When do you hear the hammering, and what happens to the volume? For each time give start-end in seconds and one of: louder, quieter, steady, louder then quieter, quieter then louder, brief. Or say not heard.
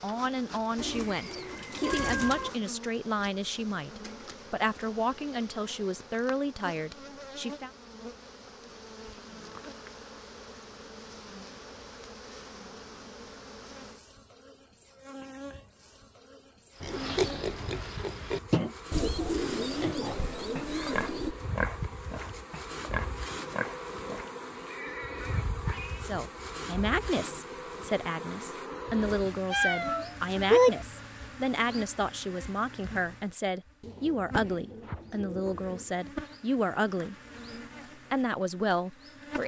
not heard.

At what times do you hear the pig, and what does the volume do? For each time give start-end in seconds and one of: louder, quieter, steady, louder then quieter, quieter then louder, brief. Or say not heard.
16.8-18.8 brief
19.8-26.1 quieter.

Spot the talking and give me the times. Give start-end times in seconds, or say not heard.
0.0-7.7, 26.0-37.1, 38.1-39.4.